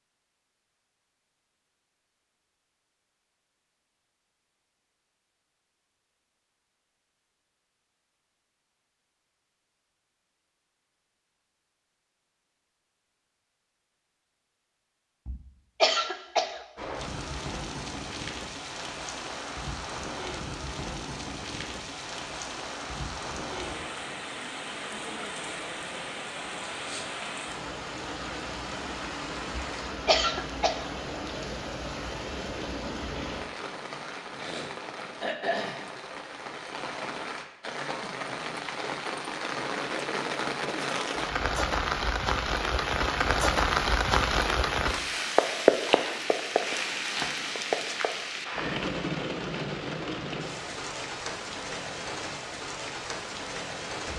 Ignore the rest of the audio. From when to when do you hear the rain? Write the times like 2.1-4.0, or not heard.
16.8-54.1.